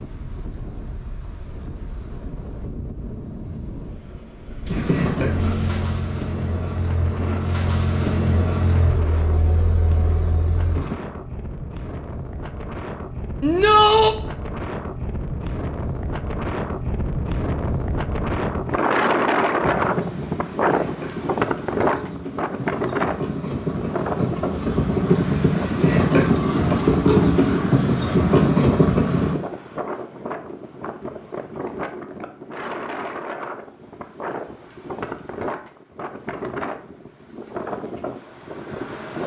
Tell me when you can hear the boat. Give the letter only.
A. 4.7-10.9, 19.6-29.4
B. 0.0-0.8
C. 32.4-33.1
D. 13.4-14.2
A.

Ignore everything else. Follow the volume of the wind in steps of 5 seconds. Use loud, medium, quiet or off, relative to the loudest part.
quiet, medium, medium, loud, loud, medium, medium, medium.